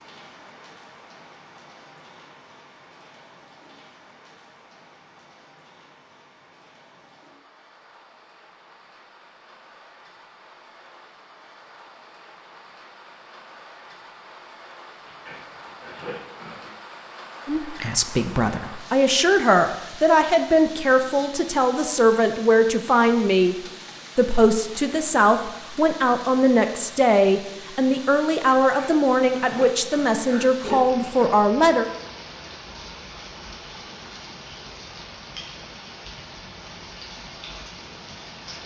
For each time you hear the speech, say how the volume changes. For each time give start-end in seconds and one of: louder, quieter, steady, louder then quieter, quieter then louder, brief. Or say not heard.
17.4-31.9 steady.